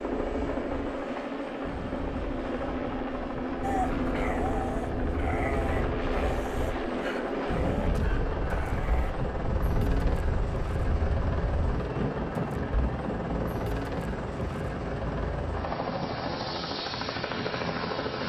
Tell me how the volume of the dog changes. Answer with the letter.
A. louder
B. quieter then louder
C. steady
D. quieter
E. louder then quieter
D.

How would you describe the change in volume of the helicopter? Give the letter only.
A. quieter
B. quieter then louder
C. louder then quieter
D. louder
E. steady
E.